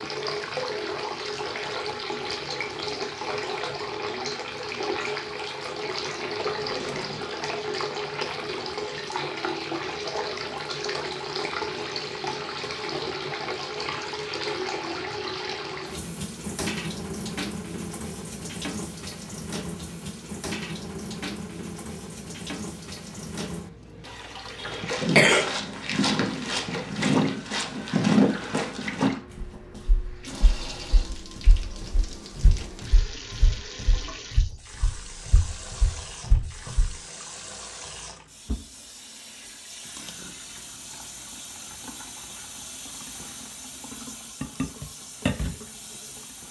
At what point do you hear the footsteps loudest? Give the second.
28 s.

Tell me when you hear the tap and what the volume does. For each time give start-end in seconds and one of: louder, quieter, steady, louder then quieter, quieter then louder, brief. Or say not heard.
0.0-46.4 quieter.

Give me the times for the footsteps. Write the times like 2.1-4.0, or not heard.
24.9-36.9.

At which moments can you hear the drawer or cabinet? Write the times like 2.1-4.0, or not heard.
6.4-7.3.